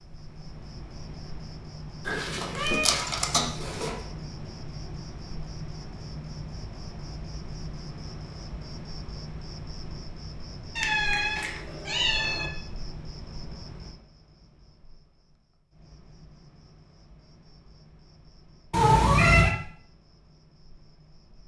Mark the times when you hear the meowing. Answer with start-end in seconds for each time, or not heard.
2.0-3.9, 10.8-12.5, 18.7-19.6.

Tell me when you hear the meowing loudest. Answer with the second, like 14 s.
19 s.